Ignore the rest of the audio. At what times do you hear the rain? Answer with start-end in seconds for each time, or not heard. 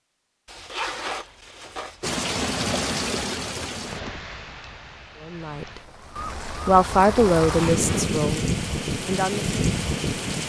2.0-10.4.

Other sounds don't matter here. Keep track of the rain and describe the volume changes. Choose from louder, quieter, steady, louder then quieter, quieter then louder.
quieter then louder.